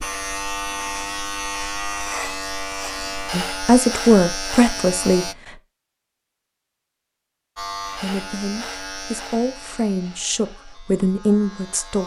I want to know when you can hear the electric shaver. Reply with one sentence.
The electric shaver can be heard from 0.0 to 5.3 s and from 7.5 to 12.0 s.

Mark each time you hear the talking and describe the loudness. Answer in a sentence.
The talking can be heard briefly from 3.3 to 5.2 s; and from 8.0 to 12.0 s, getting louder.